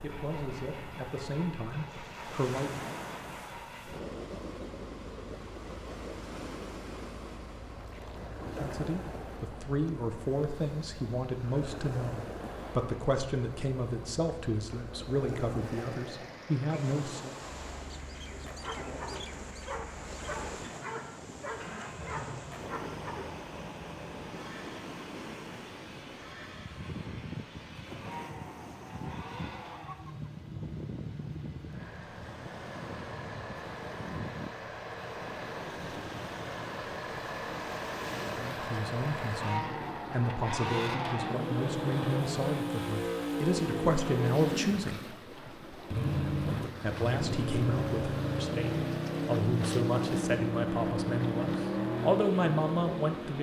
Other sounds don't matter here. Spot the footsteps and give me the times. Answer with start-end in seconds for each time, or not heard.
not heard.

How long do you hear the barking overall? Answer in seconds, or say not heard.
5 s.